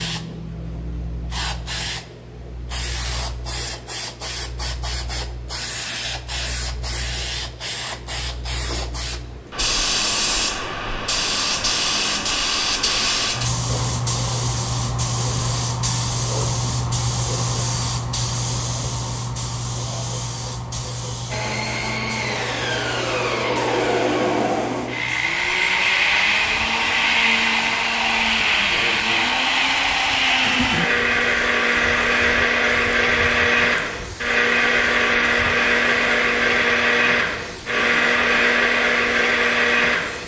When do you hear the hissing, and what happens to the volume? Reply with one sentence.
You can hear the hissing from 0.0 to 40.2 s, getting louder then quieter.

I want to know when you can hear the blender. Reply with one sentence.
You can hear the blender from 21.3 to 40.2 s.